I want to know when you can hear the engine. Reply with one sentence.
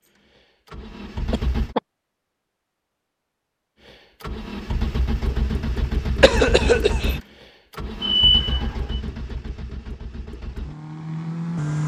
You can hear the engine from 0.0 to 1.8 s and from 3.9 to 11.8 s.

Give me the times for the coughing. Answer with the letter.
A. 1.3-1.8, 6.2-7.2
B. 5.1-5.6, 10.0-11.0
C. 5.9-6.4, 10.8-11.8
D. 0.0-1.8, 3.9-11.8
A.